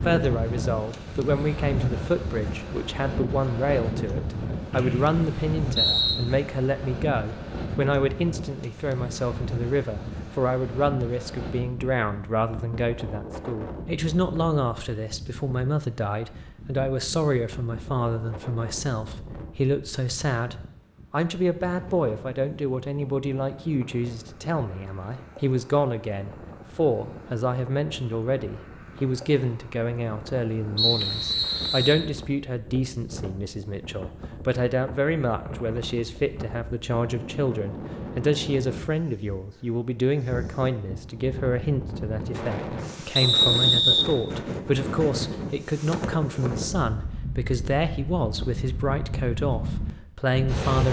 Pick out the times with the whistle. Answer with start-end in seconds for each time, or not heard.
4.7-6.2, 30.8-32.0, 43.1-44.0.